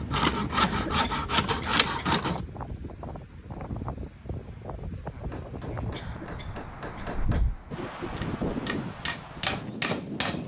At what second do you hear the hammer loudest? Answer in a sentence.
The loudest moment of the hammer is at 10 seconds.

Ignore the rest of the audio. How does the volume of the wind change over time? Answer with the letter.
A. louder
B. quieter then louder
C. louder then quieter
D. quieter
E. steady
A.